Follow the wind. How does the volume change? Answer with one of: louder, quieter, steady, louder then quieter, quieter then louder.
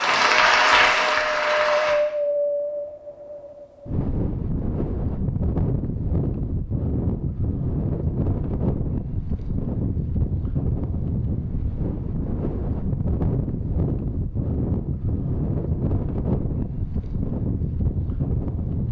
steady.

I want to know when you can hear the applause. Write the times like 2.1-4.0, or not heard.
0.0-1.9.